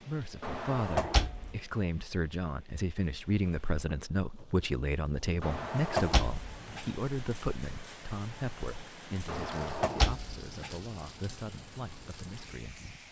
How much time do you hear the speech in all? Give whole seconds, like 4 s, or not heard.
13 s.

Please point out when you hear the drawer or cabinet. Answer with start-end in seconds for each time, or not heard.
0.4-1.6, 5.4-6.8, 9.2-10.7.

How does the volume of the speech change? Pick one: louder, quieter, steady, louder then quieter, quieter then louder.
quieter.